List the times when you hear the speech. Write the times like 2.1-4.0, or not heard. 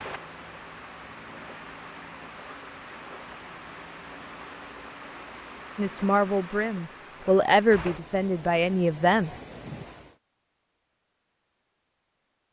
5.8-9.3.